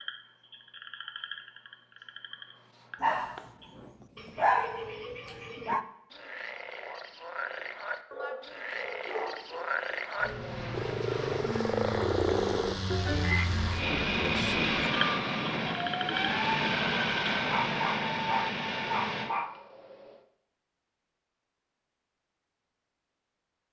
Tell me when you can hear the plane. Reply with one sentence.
The plane can be heard from 10.2 to 19.3 s.